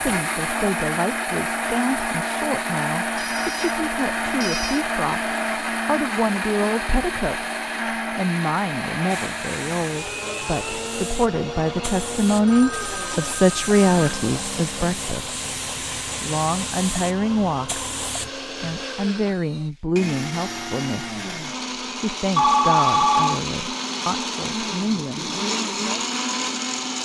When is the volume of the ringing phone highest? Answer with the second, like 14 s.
23 s.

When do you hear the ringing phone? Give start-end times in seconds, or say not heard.
3.1-4.8, 12.4-14.2, 22.4-23.4.